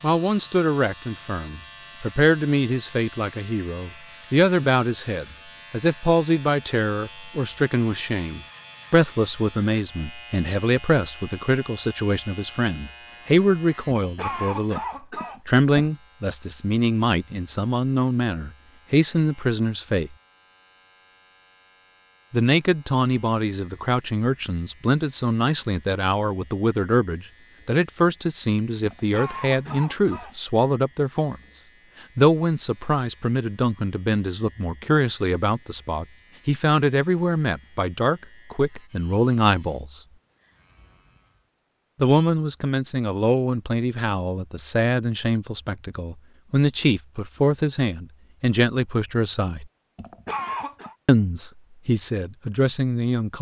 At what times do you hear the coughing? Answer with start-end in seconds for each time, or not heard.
13.9-15.9, 28.9-30.4, 50.0-51.0.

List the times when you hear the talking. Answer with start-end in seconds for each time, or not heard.
0.0-14.8, 15.4-20.1, 22.3-31.4, 32.1-40.0, 42.0-49.6, 51.0-53.3.